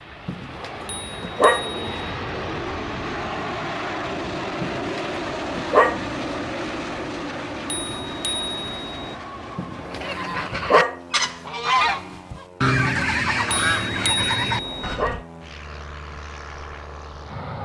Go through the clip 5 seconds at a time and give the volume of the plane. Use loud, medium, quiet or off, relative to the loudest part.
loud, loud, medium, medium.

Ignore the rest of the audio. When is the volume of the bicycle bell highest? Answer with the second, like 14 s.
14 s.